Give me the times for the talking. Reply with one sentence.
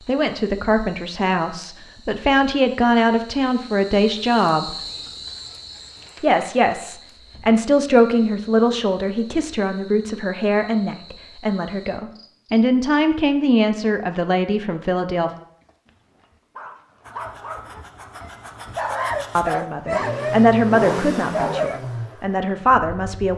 The talking can be heard from 0.0 to 4.8 s, from 6.2 to 15.3 s and from 19.4 to 23.3 s.